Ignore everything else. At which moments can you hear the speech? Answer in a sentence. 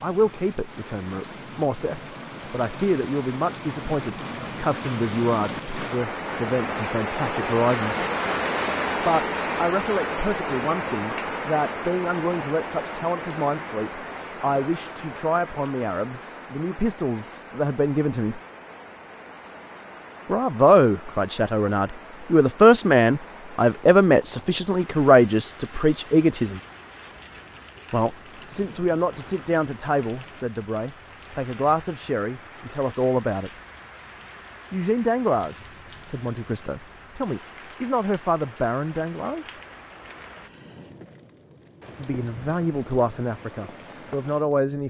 You can hear the speech from 0.0 to 8.1 s, from 9.1 to 18.4 s, from 20.2 to 26.6 s, from 27.9 to 33.5 s, from 34.7 to 39.5 s and from 42.0 to 44.8 s.